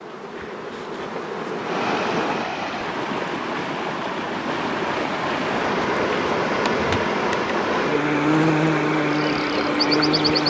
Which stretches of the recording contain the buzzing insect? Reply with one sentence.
You can hear the buzzing insect from 0.0 to 2.5 s and from 5.4 to 10.4 s.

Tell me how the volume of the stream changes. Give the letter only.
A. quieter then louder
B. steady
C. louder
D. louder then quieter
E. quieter
B.